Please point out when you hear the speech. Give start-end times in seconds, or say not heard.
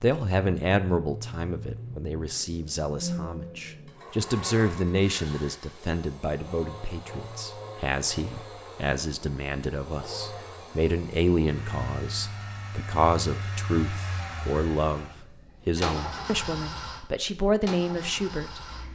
0.0-18.9.